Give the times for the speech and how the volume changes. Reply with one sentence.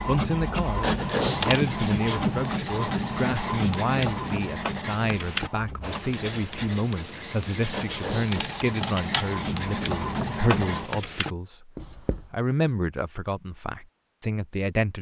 You can hear the speech from 0.1 to 14.9 s, at a steady volume.